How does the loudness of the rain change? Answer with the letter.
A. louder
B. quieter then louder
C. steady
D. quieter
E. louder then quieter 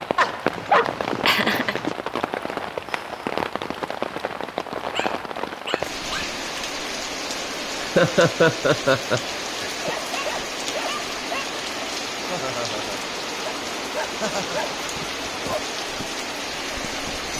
C.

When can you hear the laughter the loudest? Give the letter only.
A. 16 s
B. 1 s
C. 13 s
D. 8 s
D.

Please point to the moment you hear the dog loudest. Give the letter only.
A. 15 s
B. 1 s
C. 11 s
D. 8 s
B.